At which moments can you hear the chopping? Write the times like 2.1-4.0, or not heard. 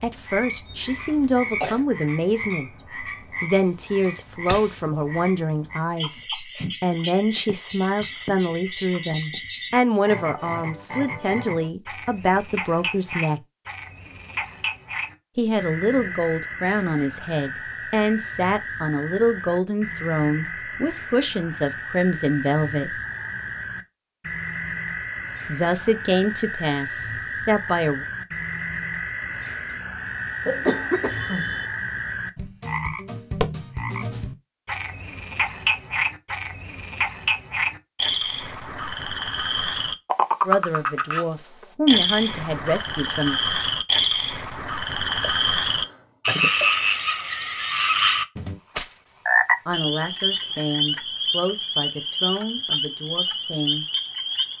not heard.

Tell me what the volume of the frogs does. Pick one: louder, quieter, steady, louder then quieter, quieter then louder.
louder.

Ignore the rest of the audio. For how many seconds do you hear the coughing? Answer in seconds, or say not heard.
4 s.